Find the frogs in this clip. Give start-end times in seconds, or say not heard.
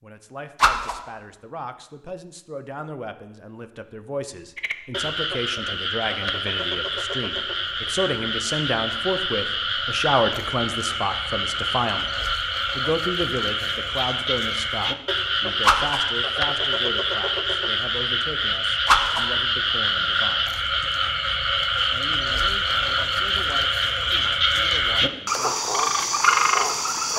4.5-27.1.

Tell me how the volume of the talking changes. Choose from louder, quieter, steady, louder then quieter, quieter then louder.
louder then quieter.